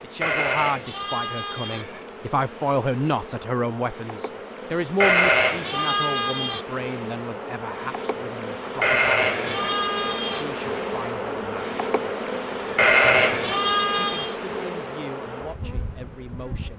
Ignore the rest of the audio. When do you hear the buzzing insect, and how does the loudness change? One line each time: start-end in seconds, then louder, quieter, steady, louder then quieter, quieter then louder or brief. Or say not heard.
0.0-16.7 louder.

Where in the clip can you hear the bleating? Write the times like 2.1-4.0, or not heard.
0.2-1.9, 5.0-6.7, 8.8-10.4, 12.8-14.3.